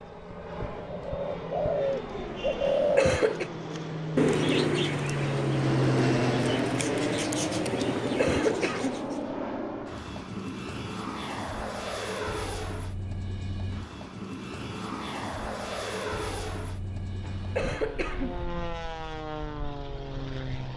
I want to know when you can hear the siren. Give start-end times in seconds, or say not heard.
not heard.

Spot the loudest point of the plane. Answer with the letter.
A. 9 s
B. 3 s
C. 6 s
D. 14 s
C.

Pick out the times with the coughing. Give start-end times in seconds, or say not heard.
2.6-3.5, 8.0-8.9, 17.2-18.4.